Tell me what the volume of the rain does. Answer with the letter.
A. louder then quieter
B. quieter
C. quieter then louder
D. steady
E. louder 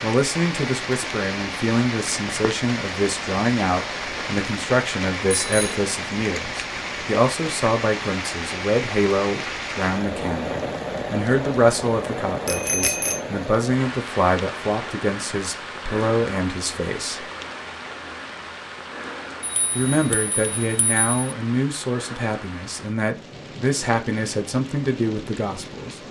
B.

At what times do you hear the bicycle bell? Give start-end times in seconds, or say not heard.
5.3-5.8, 12.4-13.2, 19.4-21.2.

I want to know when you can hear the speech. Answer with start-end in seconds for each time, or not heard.
0.0-17.2, 19.8-26.0.